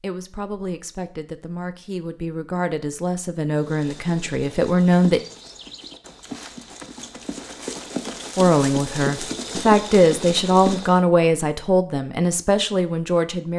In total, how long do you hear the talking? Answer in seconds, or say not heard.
10 s.